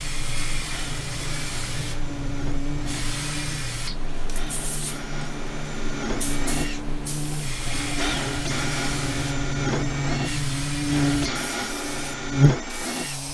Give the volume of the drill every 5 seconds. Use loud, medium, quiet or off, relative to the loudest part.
medium, loud, loud.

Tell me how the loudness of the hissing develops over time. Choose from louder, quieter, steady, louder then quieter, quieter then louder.
steady.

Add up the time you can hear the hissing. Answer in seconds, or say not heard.
13 s.